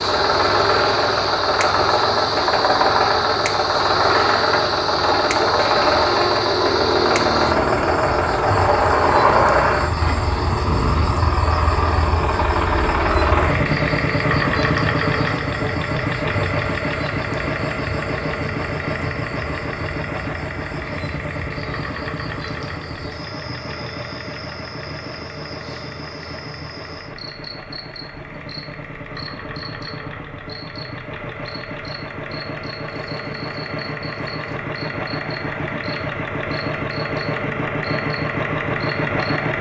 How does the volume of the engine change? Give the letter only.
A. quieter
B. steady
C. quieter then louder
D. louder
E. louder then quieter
C.